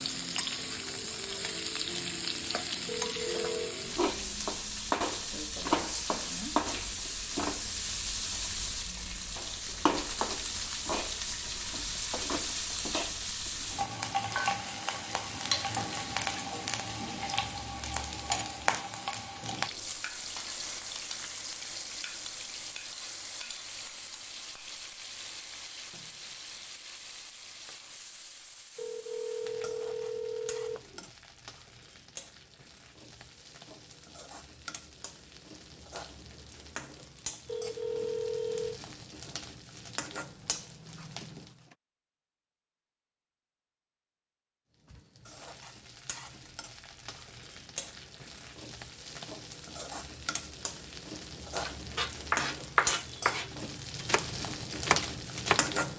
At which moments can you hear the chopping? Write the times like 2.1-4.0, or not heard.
51.6-55.7.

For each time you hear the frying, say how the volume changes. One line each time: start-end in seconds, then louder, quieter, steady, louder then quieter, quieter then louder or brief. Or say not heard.
0.0-41.8 quieter
44.8-55.9 louder.